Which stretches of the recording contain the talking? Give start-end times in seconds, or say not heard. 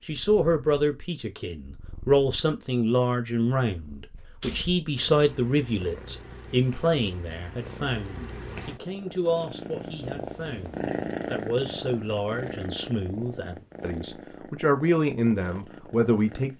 0.1-16.5.